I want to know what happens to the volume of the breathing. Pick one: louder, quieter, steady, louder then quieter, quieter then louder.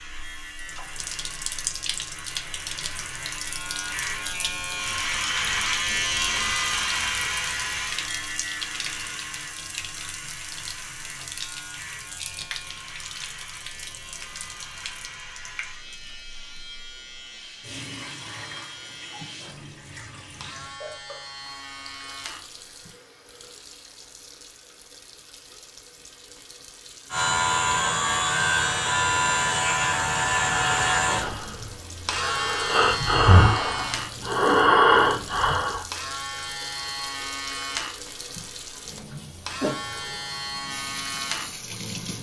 louder.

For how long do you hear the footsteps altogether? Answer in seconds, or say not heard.
not heard.